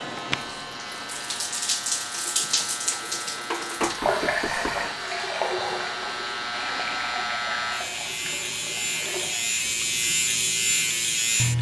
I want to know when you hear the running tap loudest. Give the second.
4 s.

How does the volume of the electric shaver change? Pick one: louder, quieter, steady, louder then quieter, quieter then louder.
louder.